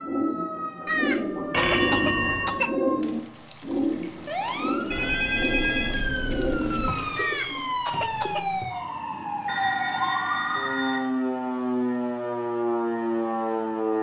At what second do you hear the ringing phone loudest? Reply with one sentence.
The volume of the ringing phone peaks at 2 seconds.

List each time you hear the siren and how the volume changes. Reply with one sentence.
You can hear the siren from 0.0 to 13.9 s, getting louder.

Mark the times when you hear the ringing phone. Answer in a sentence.
You can hear the ringing phone from 1.5 to 2.6 s, from 4.9 to 6.9 s and from 9.4 to 11.0 s.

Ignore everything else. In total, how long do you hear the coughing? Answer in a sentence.
The coughing can be heard for 3 seconds in total.